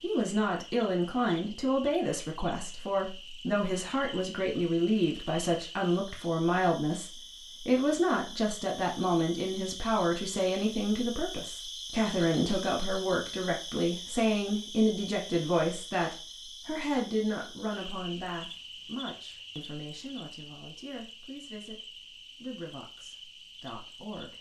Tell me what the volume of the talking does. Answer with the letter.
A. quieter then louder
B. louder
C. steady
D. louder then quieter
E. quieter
E.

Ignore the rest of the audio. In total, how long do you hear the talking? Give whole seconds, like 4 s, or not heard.
24 s.